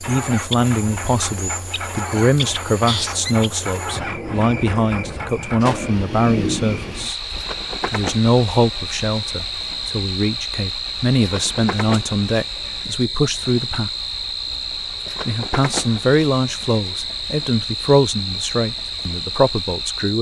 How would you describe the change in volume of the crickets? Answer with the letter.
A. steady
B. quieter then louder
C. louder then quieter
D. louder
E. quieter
A.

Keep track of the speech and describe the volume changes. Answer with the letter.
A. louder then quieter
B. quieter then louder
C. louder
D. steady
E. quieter
D.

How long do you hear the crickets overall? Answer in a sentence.
The crickets can be heard for 20 seconds in total.